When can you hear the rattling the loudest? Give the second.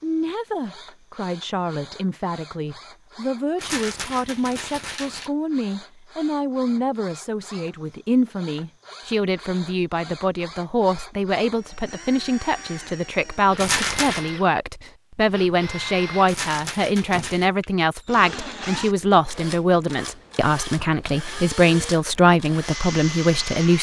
14 s.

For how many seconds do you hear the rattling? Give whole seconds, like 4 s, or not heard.
4 s.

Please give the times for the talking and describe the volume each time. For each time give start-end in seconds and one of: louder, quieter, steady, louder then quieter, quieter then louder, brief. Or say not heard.
0.0-23.7 louder.